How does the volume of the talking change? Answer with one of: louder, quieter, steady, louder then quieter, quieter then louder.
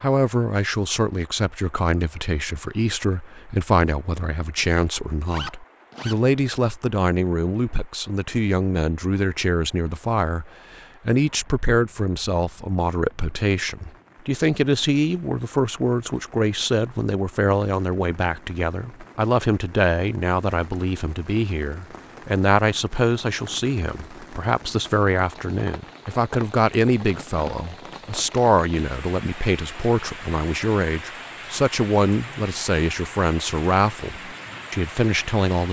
steady.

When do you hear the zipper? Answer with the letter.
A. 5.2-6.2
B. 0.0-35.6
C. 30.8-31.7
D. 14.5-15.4
A.